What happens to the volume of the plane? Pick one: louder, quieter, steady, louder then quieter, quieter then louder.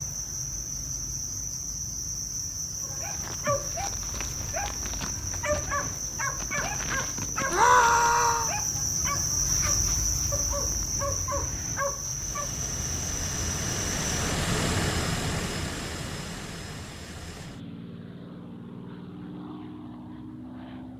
louder then quieter.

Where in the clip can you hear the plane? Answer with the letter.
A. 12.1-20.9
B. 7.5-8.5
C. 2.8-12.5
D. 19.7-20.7
A.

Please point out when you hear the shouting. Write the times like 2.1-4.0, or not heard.
7.5-8.5.